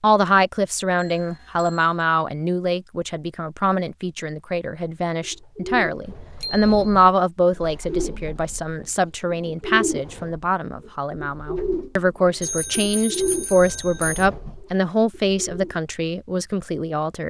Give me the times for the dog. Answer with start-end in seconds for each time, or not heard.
not heard.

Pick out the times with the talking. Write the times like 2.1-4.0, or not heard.
0.0-17.2.